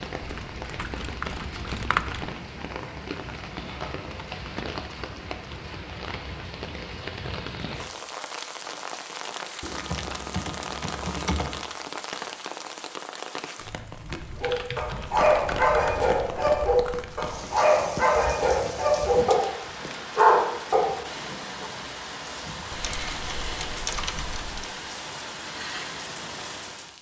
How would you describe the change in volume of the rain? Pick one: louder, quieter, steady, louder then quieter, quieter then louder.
steady.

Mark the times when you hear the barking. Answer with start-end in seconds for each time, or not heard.
14.4-21.7.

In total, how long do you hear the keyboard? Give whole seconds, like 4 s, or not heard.
8 s.